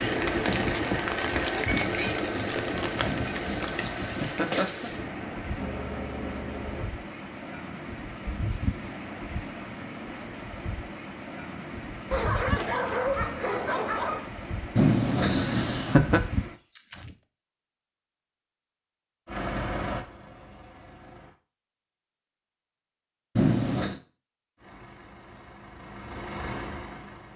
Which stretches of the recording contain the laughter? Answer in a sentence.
You can hear the laughter from 3.0 to 4.9 s, from 14.8 to 16.2 s and from 23.4 to 24.0 s.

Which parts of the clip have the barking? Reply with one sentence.
The barking can be heard from 12.1 to 14.2 s.